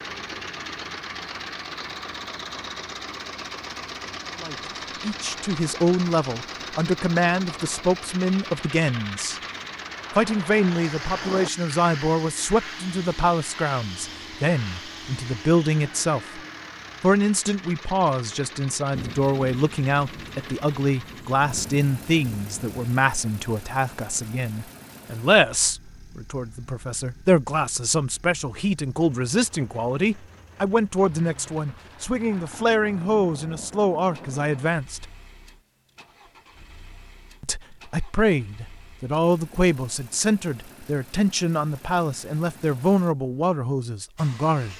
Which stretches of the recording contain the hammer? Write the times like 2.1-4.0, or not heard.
not heard.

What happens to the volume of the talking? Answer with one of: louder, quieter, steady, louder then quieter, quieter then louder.
steady.